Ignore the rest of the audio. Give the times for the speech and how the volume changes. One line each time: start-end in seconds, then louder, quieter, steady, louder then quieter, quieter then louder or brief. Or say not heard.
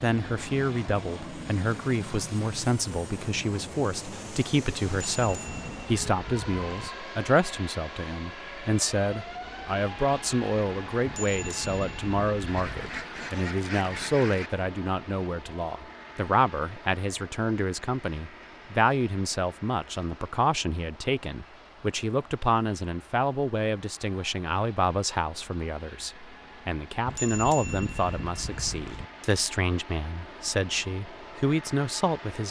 0.0-32.4 steady.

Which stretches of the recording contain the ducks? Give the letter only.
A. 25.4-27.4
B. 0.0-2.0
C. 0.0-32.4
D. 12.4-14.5
D.